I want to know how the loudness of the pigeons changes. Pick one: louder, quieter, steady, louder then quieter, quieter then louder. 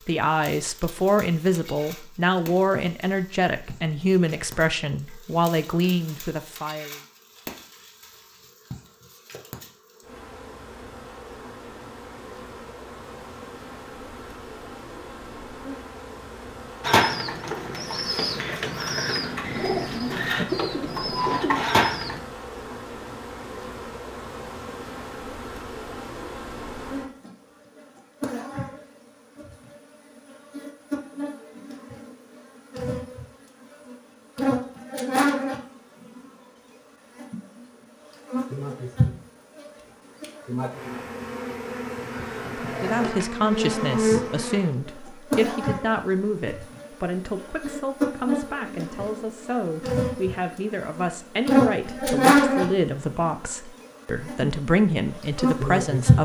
louder.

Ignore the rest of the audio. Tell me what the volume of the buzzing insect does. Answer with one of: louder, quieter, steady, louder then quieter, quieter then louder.
louder.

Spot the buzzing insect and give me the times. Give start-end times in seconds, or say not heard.
0.0-56.1.